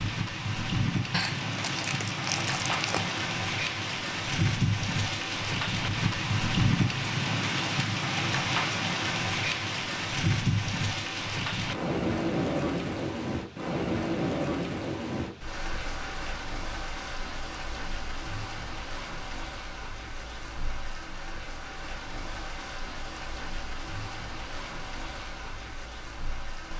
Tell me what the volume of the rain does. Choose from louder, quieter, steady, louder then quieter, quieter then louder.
quieter.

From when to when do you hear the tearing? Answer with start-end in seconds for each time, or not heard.
1.1-3.2.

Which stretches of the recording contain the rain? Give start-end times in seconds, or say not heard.
0.0-26.7.